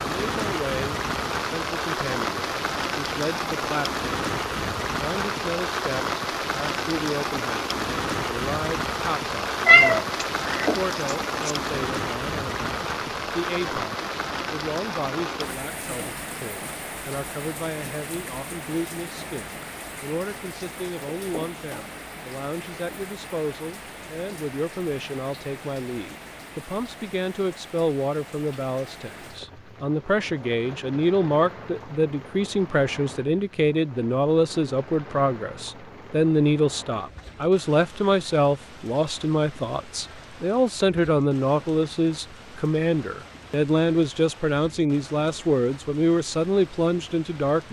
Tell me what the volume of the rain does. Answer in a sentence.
The volume of the rain goes down.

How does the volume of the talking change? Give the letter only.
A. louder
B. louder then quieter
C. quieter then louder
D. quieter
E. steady
A.